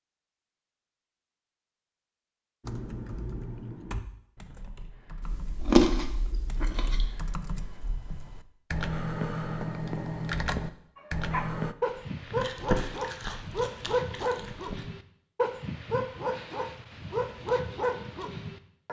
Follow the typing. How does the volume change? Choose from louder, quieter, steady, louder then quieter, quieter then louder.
quieter then louder.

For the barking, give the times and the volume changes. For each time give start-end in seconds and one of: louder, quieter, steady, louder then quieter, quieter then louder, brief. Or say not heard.
10.9-18.8 steady.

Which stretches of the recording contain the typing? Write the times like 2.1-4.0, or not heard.
2.6-11.8.